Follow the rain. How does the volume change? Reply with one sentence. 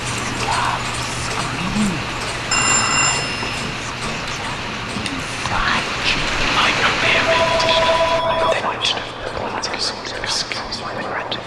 The loudness of the rain goes up.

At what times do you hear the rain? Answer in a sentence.
You can hear the rain from 0.0 to 8.2 s.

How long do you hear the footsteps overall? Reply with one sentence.
The footsteps can't be heard in this clip.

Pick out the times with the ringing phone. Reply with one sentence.
You can hear the ringing phone from 2.5 to 3.5 s and from 7.0 to 8.6 s.